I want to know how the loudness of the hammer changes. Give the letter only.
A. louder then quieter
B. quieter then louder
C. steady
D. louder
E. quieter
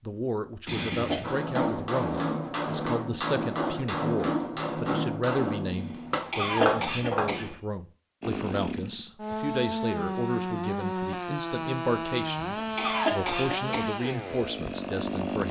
C.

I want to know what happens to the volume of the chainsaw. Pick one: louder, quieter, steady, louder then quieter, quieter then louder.
steady.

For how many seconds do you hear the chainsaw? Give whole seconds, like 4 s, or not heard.
7 s.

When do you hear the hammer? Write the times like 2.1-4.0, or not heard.
1.2-7.5.